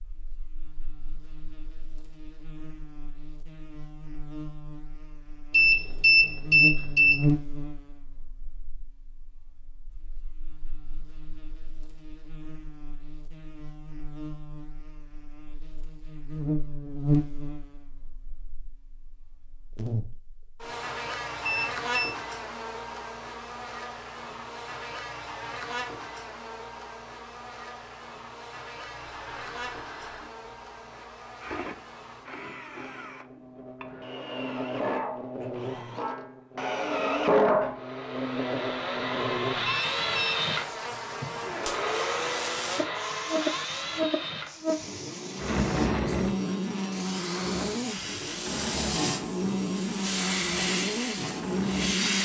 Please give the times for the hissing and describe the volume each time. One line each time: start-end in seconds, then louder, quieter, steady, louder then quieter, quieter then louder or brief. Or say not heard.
41.9-52.2 louder.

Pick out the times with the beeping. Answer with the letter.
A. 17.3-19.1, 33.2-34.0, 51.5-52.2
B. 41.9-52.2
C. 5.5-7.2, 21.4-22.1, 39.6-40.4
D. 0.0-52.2
C.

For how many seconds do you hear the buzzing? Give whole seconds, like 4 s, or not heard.
52 s.